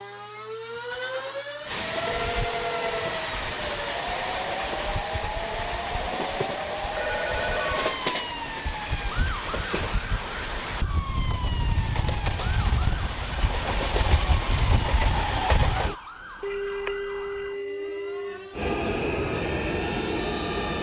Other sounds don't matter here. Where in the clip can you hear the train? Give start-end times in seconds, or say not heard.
1.6-15.9, 18.5-20.7.